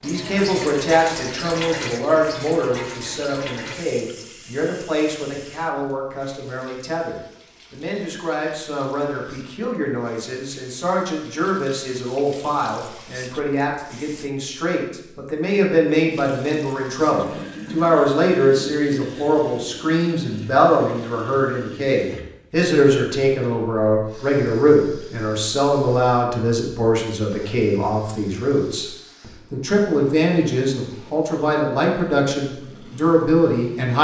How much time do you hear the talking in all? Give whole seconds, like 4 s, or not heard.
34 s.